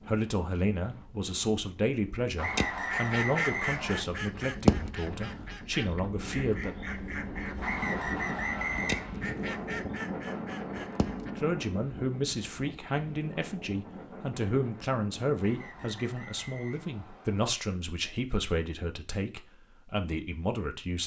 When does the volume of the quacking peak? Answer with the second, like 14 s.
5 s.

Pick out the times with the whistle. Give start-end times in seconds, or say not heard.
2.4-4.0, 7.6-9.2, 15.3-17.4.